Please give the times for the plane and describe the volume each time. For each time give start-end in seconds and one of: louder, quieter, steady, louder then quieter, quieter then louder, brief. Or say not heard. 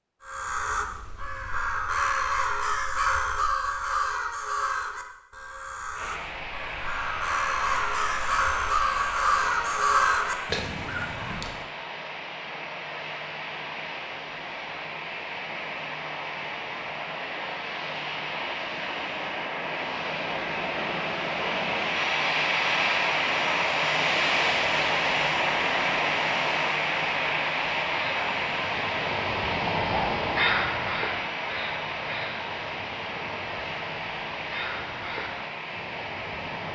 5.9-36.7 louder then quieter.